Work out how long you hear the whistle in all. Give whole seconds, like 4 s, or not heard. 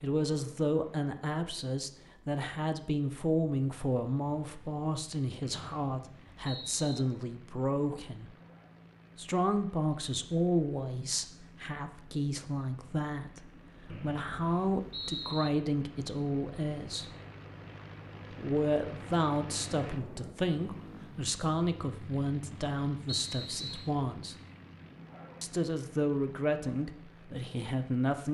4 s.